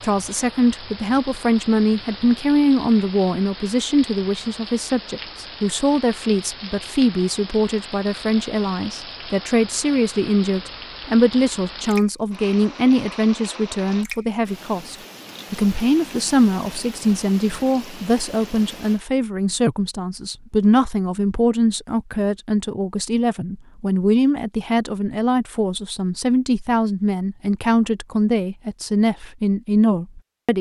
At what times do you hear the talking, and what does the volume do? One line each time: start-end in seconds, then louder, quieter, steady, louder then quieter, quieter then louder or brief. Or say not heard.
0.0-30.5 steady.